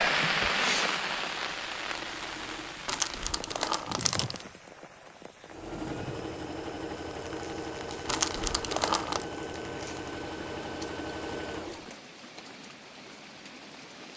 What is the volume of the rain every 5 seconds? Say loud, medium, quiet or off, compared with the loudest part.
loud, quiet, quiet.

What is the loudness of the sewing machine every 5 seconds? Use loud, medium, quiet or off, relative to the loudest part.
medium, loud, loud.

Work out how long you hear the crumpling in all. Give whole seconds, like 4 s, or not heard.
3 s.